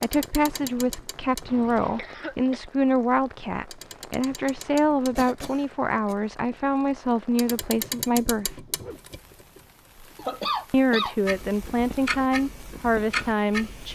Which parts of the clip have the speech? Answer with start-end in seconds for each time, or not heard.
0.0-8.6, 10.7-13.9.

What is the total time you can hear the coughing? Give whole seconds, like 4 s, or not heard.
3 s.